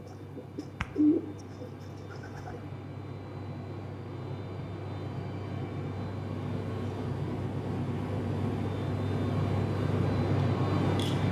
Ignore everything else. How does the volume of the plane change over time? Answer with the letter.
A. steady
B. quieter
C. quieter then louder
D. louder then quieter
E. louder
E.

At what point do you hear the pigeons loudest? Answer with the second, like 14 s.
1 s.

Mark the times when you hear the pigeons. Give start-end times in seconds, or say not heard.
0.0-2.6.